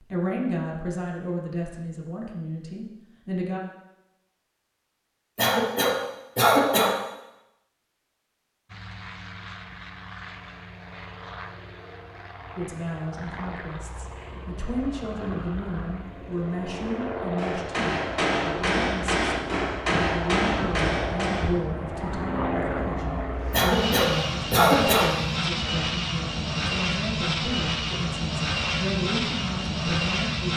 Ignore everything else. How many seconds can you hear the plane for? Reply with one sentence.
The plane can be heard for 22 seconds in total.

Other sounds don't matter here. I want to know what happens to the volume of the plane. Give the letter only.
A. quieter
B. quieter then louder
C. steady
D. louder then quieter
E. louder
E.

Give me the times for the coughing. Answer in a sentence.
The coughing can be heard from 5.3 to 7.0 s and from 23.5 to 25.1 s.